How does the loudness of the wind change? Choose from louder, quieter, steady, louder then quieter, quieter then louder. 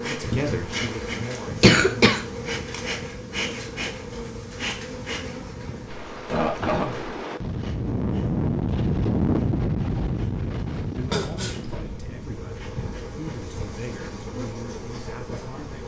louder then quieter.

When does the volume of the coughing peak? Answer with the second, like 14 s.
2 s.